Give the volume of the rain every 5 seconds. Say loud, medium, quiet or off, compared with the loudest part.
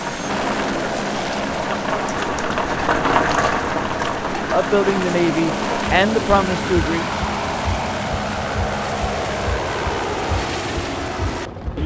loud, medium, quiet.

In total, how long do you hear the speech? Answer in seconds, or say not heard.
3 s.